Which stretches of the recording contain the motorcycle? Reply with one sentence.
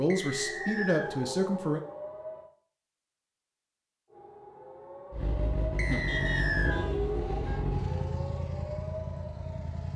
The motorcycle can be heard from 5.1 to 9.9 s.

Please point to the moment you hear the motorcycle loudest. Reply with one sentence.
The loudest moment of the motorcycle is at 6 seconds.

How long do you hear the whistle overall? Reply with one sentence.
The whistle can be heard for 2 seconds in total.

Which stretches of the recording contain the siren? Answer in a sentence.
The siren can be heard from 0.0 to 2.5 s and from 4.1 to 9.9 s.